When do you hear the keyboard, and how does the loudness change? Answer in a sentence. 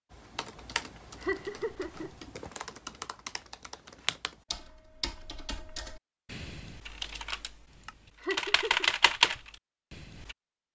The keyboard can be heard from 0.1 to 10.3 s, getting louder.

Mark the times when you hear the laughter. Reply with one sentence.
You can hear the laughter from 1.2 to 2.3 s and from 8.2 to 8.9 s.